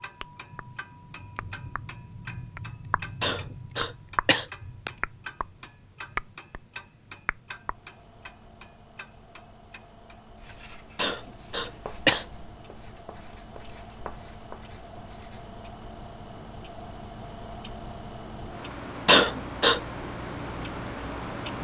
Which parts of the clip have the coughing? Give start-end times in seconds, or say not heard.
3.2-4.9, 10.9-12.2, 19.1-19.8.